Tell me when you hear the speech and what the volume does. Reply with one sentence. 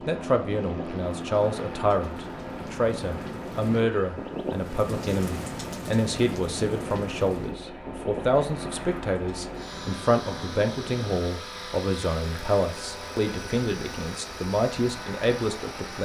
You can hear the speech from 0.1 to 15.9 s, at a steady volume.